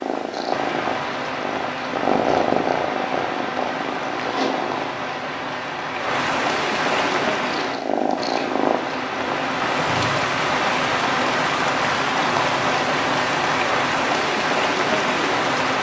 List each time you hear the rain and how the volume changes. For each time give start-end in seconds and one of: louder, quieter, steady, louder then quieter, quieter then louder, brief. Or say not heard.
0.0-15.7 louder.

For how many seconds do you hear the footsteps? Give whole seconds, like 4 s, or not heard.
not heard.